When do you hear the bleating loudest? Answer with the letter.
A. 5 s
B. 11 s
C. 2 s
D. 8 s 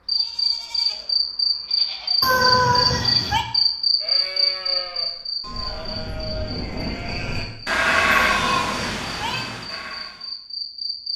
D.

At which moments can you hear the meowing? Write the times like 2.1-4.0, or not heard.
2.2-3.5, 8.2-9.5.